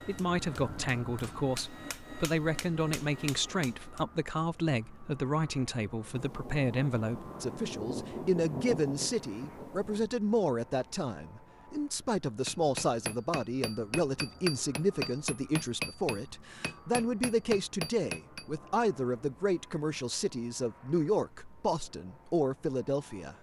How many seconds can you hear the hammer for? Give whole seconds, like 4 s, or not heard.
10 s.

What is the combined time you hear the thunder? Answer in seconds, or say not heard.
4 s.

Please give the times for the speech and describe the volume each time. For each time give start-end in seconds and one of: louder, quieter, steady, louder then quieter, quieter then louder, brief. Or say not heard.
0.1-23.3 steady.